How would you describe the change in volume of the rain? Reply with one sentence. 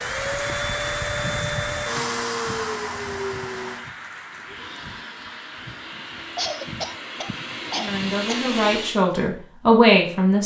The volume of the rain goes down.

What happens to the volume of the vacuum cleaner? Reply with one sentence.
The loudness of the vacuum cleaner goes down, then up.